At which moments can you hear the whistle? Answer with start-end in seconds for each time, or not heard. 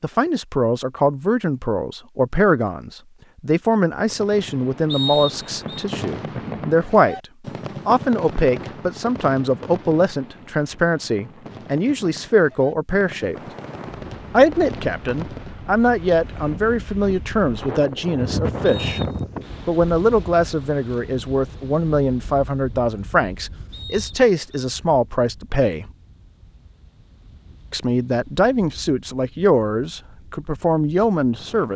4.9-5.8, 18.6-19.5, 23.7-24.7.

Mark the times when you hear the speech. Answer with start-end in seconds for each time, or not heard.
0.0-7.2, 7.8-13.3, 14.3-19.0, 19.6-25.9, 27.7-31.7.